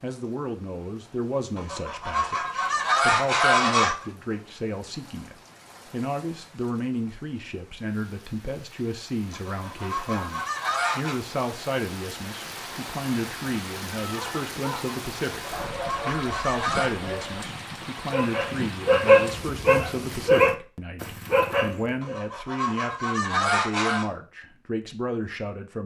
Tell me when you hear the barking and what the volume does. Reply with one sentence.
The barking can be heard from 13.9 to 22.1 s, getting louder.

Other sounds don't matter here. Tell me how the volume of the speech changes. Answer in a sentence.
The volume of the speech stays about the same.